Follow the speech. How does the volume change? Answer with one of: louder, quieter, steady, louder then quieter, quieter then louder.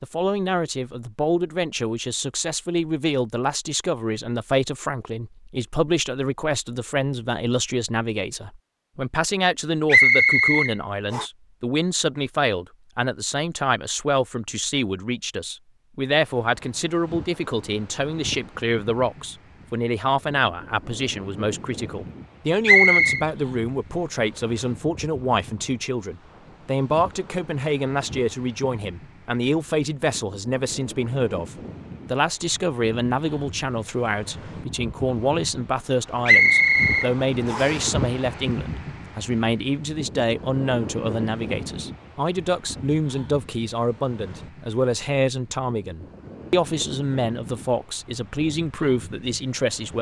steady.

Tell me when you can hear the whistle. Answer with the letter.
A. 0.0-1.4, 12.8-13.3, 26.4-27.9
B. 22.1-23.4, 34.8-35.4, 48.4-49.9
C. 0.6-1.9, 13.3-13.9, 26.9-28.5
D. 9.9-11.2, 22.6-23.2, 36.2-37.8
D.